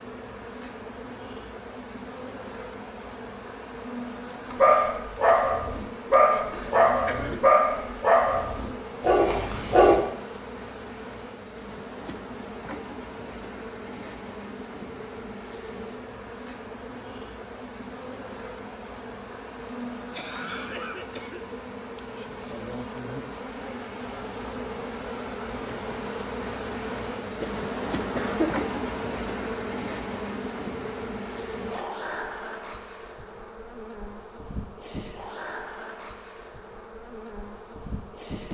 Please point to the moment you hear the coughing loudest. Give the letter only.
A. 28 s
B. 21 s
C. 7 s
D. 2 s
A.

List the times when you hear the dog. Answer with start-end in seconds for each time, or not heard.
4.5-10.0.